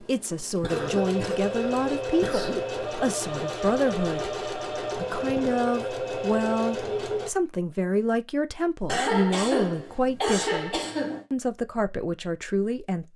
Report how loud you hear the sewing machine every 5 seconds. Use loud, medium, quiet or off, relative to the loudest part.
loud, loud, off.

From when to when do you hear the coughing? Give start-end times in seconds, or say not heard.
0.6-2.6, 5.0-5.7, 8.8-11.2.